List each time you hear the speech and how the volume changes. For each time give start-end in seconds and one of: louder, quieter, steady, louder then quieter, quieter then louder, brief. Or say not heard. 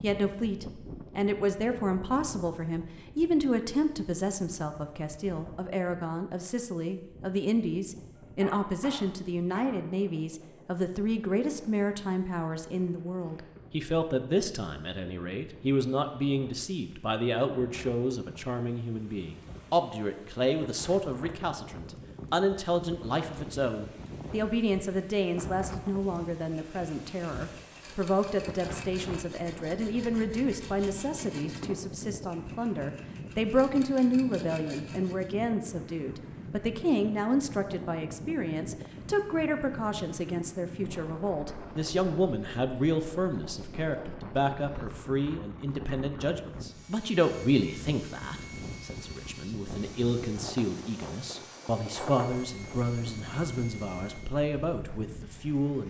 0.0-55.8 steady.